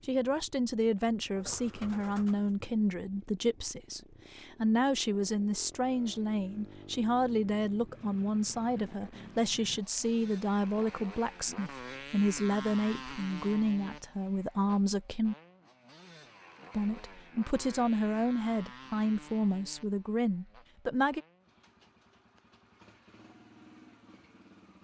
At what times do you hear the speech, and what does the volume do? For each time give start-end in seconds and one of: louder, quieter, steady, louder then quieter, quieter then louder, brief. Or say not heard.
0.1-15.3 steady
16.7-21.2 steady.